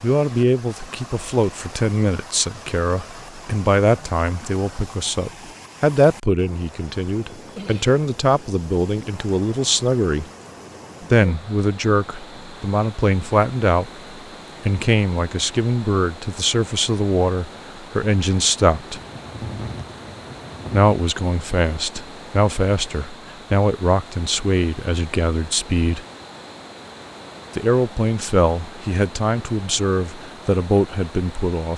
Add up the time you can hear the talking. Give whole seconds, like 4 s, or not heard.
27 s.